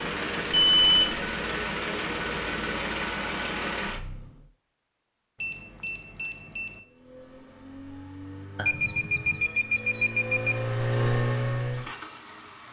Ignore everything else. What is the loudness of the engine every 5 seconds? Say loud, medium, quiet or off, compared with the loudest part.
loud, quiet, loud.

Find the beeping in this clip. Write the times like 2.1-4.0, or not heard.
0.5-1.1, 5.4-6.8, 8.6-10.6.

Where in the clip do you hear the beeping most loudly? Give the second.
1 s.